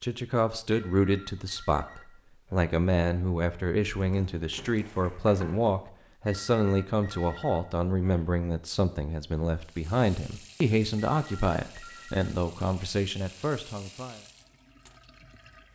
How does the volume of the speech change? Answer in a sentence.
The loudness of the speech stays about the same.